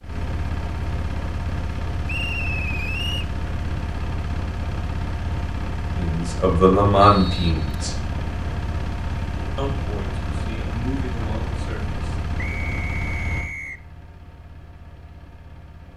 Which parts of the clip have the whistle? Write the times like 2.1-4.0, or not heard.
2.0-3.2, 7.0-7.7, 12.3-13.8.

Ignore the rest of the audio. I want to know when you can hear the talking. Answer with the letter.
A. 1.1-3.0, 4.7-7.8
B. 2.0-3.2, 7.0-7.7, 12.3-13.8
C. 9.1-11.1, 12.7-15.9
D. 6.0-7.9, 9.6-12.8
D.